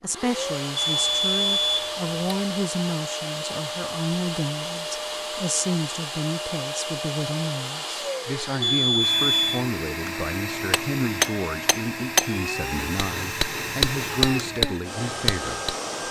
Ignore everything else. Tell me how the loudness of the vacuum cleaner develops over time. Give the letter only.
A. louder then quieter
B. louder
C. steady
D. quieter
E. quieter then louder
C.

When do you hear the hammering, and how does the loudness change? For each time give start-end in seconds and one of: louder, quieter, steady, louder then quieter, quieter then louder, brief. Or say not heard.
10.1-15.8 quieter then louder.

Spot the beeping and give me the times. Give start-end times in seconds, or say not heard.
0.8-2.4, 8.6-9.6.